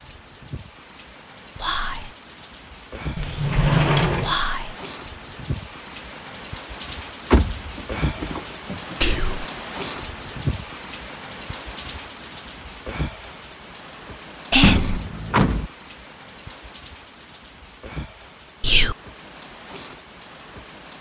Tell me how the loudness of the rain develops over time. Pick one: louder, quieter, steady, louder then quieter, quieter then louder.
louder then quieter.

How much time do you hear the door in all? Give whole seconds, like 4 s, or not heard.
4 s.